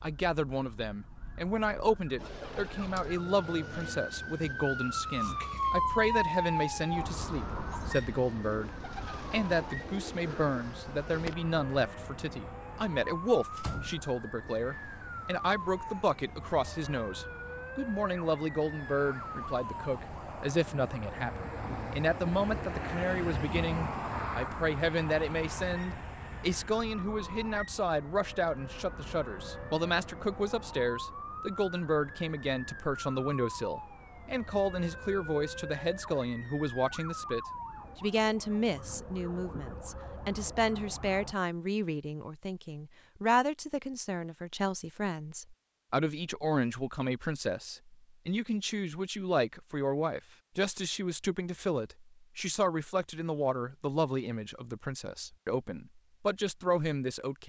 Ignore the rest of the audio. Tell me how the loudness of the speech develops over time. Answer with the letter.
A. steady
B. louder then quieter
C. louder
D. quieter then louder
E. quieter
A.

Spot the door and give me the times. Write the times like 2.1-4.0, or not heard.
13.6-14.5.